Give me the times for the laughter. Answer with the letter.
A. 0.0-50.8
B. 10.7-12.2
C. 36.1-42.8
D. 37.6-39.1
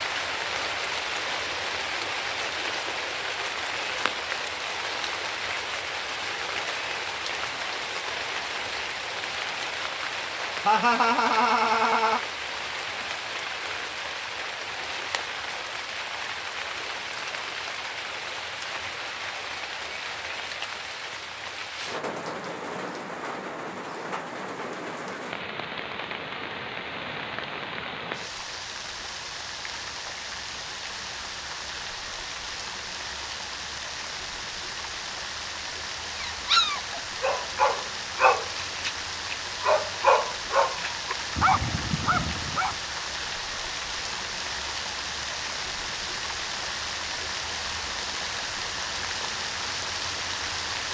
B.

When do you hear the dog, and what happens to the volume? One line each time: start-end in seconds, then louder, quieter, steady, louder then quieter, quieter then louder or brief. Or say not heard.
36.1-42.8 steady.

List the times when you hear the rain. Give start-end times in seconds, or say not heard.
0.0-50.8.